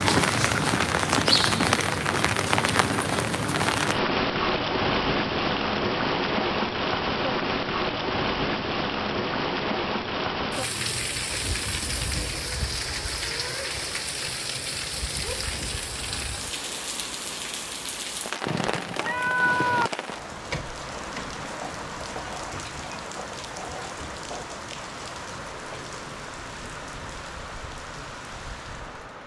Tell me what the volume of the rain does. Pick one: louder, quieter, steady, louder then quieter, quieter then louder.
quieter.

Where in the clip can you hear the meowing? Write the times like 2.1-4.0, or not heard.
18.4-19.9.